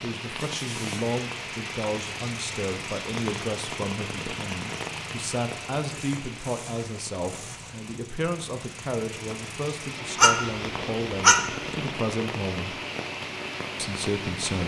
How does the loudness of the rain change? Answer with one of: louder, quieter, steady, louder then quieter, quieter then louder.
quieter then louder.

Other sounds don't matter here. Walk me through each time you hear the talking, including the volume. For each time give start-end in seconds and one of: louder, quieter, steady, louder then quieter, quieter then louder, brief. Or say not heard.
0.0-12.8 steady
13.8-14.6 brief.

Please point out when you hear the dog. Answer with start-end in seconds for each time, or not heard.
10.2-11.8.